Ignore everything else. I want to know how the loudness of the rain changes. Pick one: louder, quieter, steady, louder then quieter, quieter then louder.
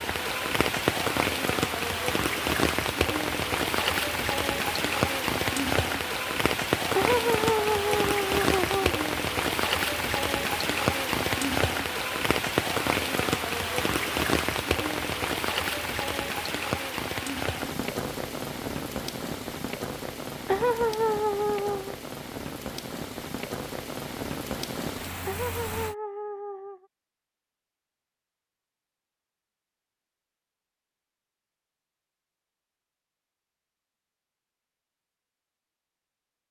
quieter.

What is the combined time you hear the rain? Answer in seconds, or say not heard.
26 s.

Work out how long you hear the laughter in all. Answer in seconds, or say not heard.
5 s.